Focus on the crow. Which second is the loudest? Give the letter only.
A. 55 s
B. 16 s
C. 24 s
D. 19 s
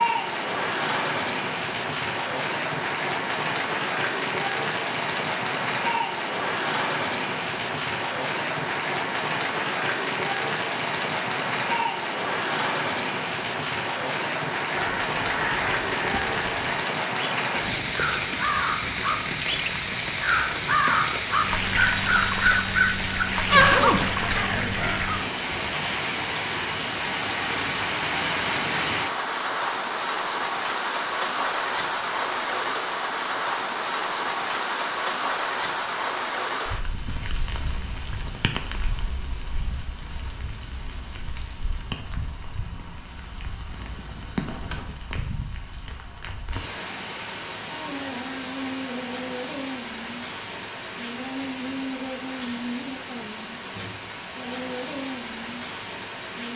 C.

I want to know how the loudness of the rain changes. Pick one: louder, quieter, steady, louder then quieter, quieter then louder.
quieter.